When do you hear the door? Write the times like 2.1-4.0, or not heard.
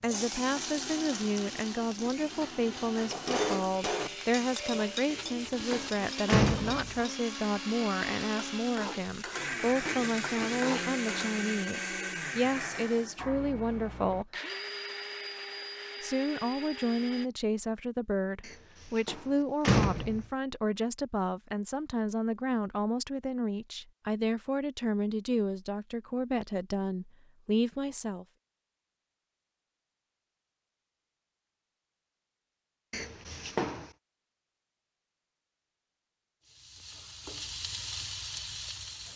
5.0-7.0, 18.4-20.2, 32.9-33.9.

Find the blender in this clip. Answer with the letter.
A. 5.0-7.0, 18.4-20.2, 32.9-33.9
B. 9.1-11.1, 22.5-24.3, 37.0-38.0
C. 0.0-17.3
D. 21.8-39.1
C.